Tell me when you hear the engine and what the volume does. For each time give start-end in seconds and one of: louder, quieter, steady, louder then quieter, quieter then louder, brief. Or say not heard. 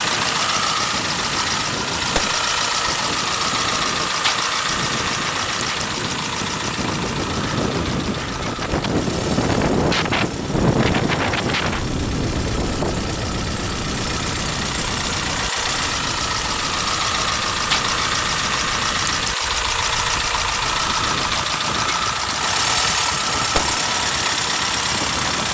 0.0-25.4 quieter then louder.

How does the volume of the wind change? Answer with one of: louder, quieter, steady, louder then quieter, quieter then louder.
louder then quieter.